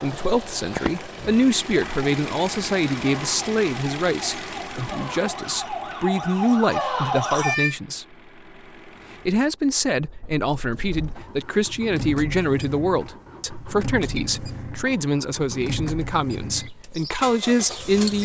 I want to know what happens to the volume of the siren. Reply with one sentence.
The loudness of the siren goes up.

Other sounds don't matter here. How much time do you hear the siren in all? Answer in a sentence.
The siren can be heard for 6 seconds in total.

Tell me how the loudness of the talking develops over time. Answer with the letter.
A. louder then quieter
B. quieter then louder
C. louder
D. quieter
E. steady
E.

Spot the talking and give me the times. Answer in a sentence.
You can hear the talking from 0.0 to 8.1 s and from 9.2 to 18.1 s.